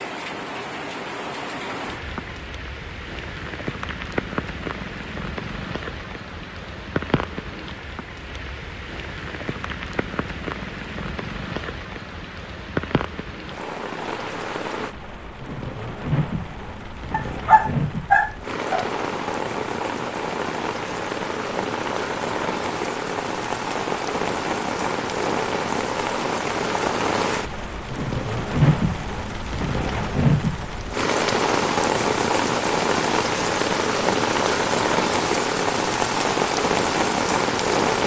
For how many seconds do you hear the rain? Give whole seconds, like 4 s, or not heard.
38 s.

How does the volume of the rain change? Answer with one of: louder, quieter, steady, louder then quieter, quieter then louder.
louder.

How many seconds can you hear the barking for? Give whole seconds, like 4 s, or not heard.
2 s.